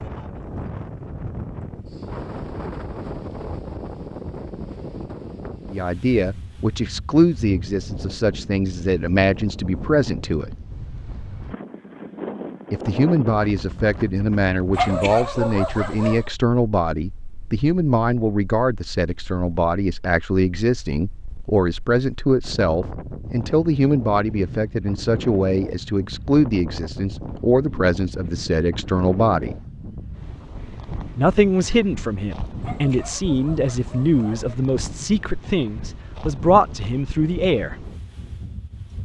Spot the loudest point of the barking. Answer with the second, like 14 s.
15 s.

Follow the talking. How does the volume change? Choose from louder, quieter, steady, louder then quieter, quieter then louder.
steady.